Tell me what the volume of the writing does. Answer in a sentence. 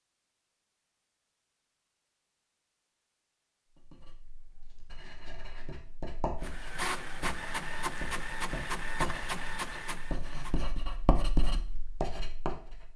The loudness of the writing goes up.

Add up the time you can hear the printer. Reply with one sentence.
You can hear the printer for 4 seconds altogether.